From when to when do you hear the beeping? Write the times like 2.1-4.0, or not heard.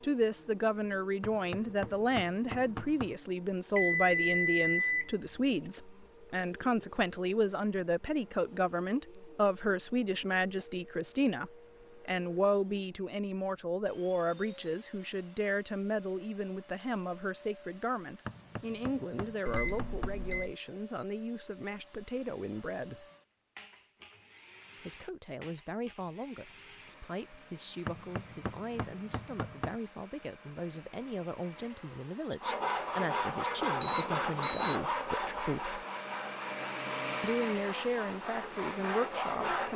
3.8-5.7, 19.4-20.6, 33.8-34.8.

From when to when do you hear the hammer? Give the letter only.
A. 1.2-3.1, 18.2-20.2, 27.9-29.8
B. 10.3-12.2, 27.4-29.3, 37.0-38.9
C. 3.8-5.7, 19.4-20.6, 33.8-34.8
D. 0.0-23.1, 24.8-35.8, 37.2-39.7
A.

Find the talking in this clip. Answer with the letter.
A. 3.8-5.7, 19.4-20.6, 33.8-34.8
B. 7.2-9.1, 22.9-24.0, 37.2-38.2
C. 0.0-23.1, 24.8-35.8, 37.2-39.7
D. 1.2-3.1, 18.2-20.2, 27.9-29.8
C.